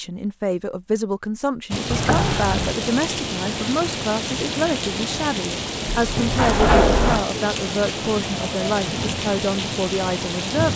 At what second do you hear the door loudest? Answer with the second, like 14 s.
7 s.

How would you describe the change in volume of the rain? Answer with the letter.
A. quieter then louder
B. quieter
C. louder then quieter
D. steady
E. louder
D.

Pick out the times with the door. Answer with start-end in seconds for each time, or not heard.
1.9-2.8, 6.0-7.2.